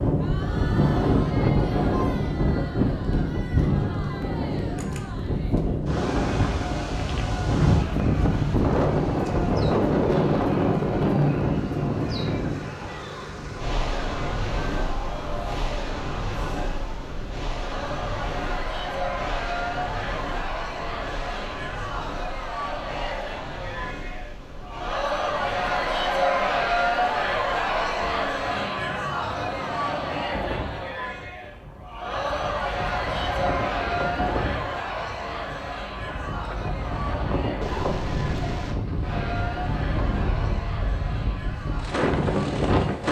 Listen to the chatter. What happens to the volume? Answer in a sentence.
The volume of the chatter goes up, then down.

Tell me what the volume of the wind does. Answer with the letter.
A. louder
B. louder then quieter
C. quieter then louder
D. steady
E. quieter
C.